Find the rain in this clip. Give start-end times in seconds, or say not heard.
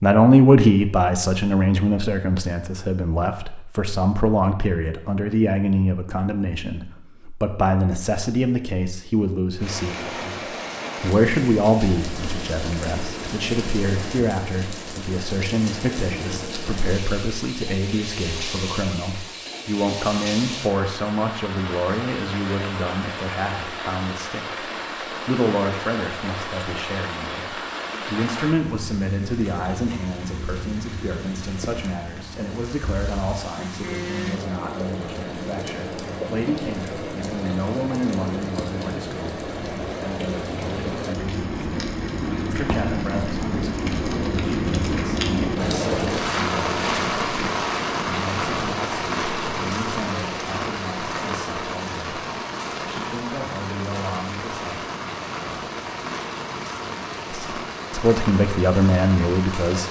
9.6-59.8.